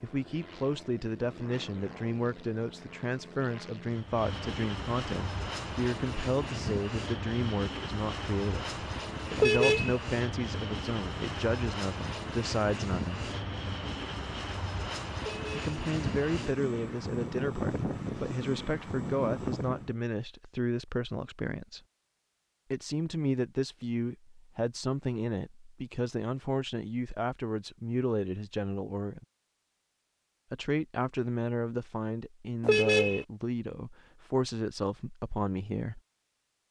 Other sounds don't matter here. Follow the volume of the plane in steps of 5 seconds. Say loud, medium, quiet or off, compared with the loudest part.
medium, loud, loud, loud, off, off, off, off.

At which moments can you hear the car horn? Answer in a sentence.
You can hear the car horn from 9.3 to 9.9 s, from 15.2 to 15.7 s and from 32.6 to 33.2 s.